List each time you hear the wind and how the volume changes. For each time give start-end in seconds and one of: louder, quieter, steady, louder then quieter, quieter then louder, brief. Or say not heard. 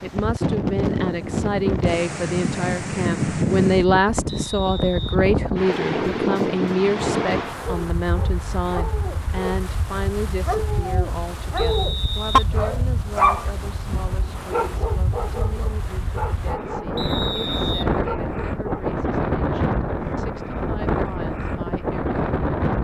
0.0-22.8 quieter then louder.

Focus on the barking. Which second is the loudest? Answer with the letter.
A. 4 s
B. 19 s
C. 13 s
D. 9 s
C.